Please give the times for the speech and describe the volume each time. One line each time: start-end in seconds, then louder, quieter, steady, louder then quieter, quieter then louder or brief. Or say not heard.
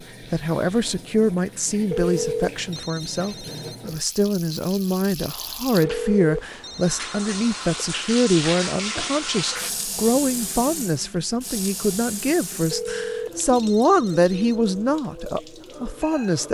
0.3-16.4 steady.